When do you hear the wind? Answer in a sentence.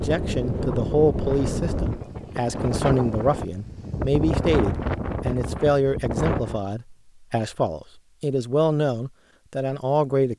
The wind can be heard from 0.0 to 6.6 s.